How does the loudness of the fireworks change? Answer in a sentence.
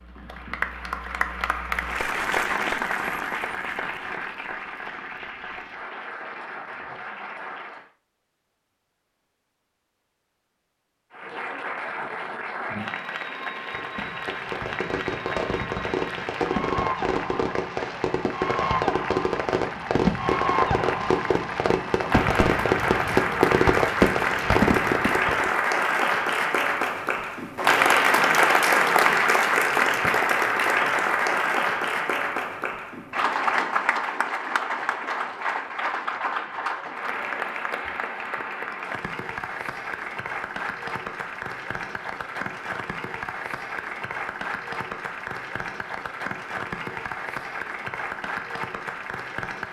The loudness of the fireworks goes up.